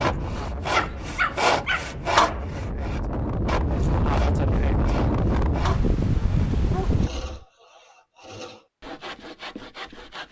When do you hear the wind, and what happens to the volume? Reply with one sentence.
You can hear the wind from 0.0 to 7.1 s, getting louder.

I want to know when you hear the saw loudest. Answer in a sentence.
The loudest moment of the saw is at 2 seconds.